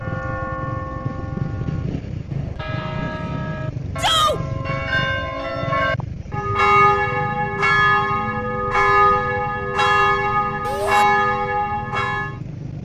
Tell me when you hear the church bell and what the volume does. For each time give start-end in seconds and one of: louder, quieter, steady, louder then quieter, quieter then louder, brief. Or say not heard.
0.0-12.3 louder.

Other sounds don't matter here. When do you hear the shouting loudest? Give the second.
4 s.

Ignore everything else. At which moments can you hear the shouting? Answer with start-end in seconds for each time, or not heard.
4.0-4.4, 10.7-11.1.